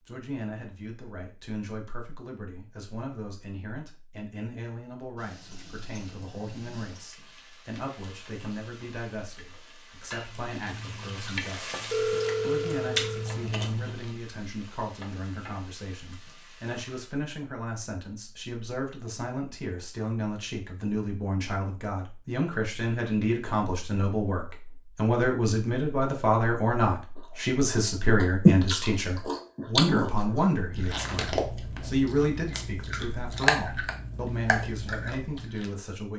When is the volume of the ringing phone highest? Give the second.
12 s.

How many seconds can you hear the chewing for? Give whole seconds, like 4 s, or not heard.
12 s.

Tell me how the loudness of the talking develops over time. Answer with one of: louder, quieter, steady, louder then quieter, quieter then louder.
louder.